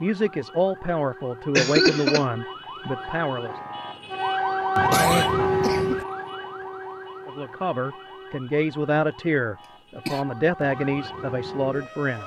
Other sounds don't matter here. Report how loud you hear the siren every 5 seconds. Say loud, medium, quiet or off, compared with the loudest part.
loud, loud, medium.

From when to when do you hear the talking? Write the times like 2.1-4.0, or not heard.
0.0-3.6, 7.2-12.2.